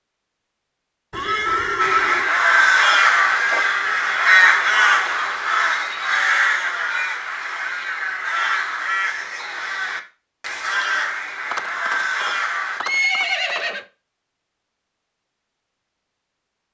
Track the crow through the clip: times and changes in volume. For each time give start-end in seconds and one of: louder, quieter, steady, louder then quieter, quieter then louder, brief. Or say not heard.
1.8-12.8 quieter.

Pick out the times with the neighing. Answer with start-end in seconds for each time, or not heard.
1.1-2.3, 11.5-13.8.